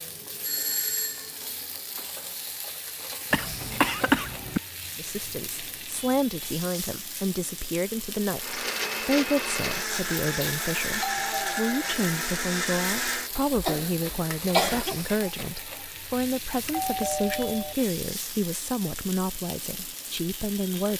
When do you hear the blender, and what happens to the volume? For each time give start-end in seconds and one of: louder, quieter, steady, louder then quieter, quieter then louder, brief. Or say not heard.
8.3-14.9 quieter.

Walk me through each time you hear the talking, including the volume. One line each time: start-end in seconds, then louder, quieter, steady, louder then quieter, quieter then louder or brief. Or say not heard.
5.0-20.9 steady.